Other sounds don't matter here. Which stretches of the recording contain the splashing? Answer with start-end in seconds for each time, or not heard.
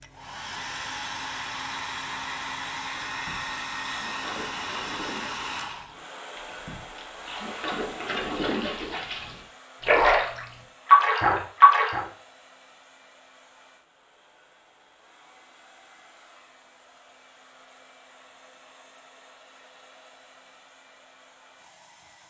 3.1-12.1.